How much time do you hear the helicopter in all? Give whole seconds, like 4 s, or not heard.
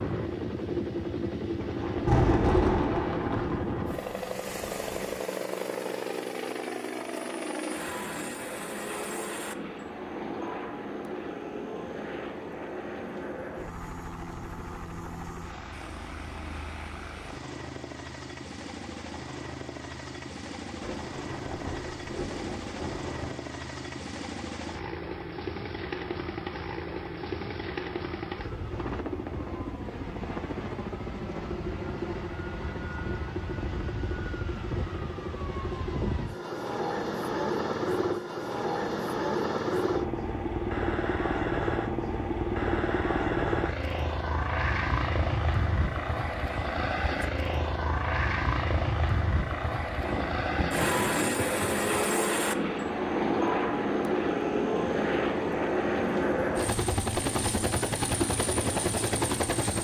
60 s.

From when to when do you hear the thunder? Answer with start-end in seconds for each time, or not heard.
1.6-5.0, 20.8-23.4, 50.0-51.9.